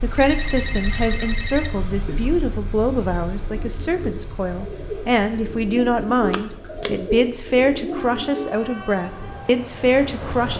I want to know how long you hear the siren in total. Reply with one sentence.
You can't hear the siren here.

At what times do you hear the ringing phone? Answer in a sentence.
The ringing phone can be heard from 0.1 to 2.1 s and from 6.3 to 6.9 s.